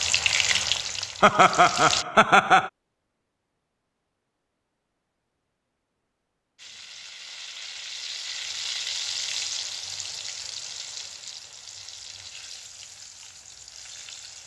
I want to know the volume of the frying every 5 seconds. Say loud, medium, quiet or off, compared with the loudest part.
loud, medium, quiet.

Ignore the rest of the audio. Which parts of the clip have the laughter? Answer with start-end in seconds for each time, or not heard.
1.2-2.7.